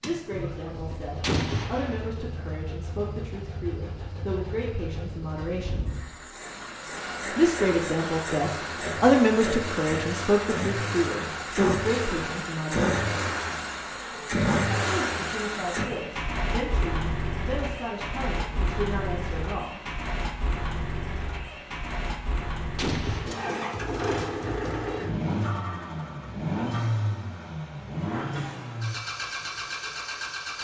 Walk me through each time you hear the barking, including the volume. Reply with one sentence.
You can't hear the barking here.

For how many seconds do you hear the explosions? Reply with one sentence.
You can hear the explosions for 2 seconds altogether.